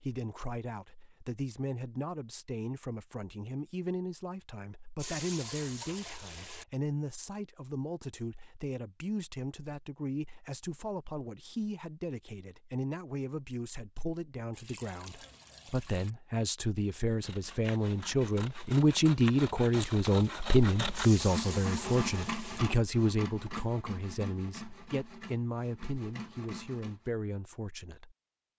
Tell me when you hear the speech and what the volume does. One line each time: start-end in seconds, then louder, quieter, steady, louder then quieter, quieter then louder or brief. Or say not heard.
0.0-28.1 louder then quieter.